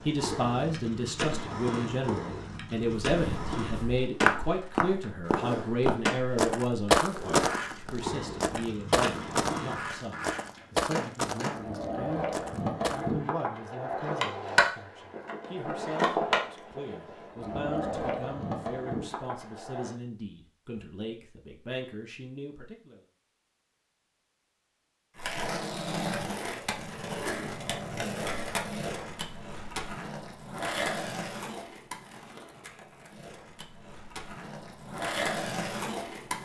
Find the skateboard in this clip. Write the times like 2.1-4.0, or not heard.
0.0-19.9, 25.1-36.3.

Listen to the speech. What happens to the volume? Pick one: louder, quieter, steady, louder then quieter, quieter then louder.
quieter.